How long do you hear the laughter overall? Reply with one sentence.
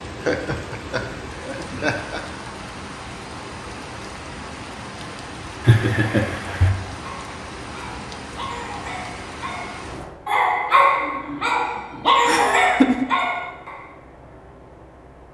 You can hear the laughter for 4 seconds altogether.